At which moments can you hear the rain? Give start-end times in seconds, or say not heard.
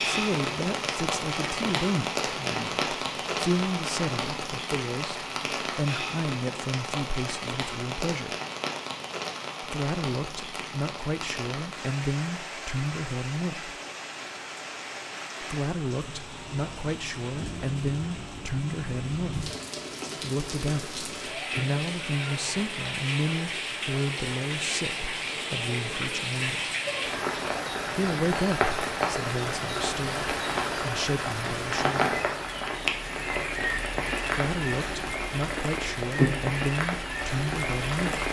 0.0-38.2.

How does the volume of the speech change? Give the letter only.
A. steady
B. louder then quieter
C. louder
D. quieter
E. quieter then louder
A.